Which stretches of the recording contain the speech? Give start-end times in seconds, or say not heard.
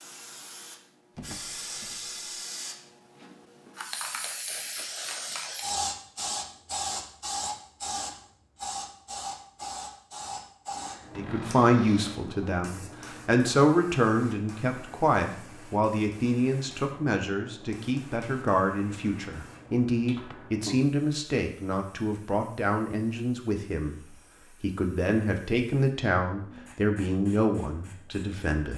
11.2-28.7.